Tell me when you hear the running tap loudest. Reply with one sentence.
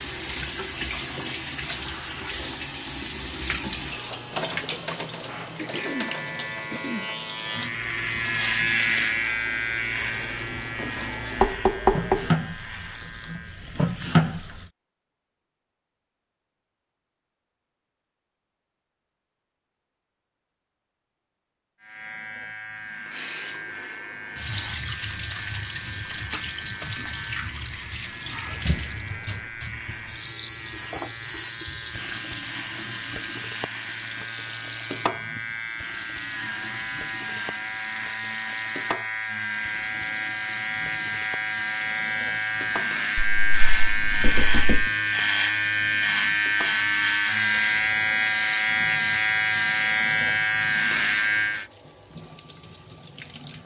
The loudest moment of the running tap is at 14 seconds.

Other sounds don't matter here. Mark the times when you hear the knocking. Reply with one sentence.
The knocking can be heard from 11.4 to 12.2 s and from 43.1 to 44.9 s.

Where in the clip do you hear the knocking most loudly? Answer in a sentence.
The volume of the knocking peaks at 12 seconds.